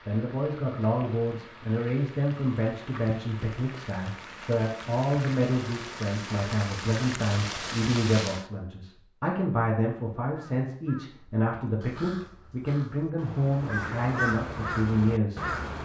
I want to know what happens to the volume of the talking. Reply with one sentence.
The loudness of the talking stays about the same.